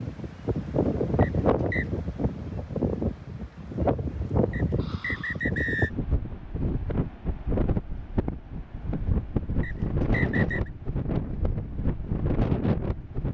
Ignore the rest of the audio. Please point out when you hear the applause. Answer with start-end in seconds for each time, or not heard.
not heard.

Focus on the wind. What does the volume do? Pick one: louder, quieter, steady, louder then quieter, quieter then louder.
steady.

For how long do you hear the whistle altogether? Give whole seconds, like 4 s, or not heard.
3 s.